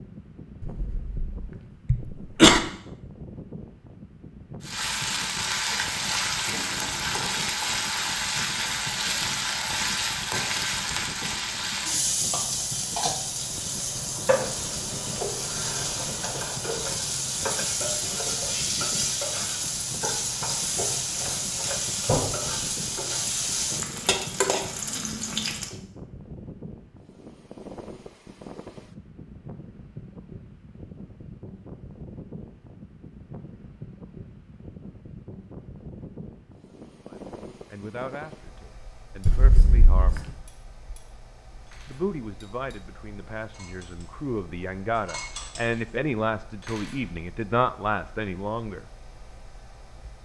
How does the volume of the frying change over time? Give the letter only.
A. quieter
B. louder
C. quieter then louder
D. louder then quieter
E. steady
E.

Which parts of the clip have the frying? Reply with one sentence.
You can hear the frying from 4.6 to 25.8 s.